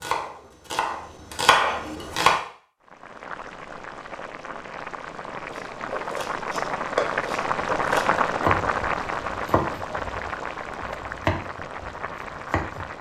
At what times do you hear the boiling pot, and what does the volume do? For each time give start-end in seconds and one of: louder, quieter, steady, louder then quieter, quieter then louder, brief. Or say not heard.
2.8-12.9 louder then quieter.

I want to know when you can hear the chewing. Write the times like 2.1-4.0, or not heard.
not heard.